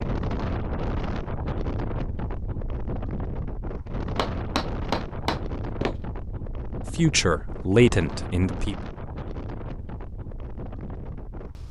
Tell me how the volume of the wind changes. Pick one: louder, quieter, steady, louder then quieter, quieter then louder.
quieter.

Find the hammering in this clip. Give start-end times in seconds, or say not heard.
4.2-6.0.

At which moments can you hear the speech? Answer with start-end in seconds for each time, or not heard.
6.9-8.8.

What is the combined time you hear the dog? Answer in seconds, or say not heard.
not heard.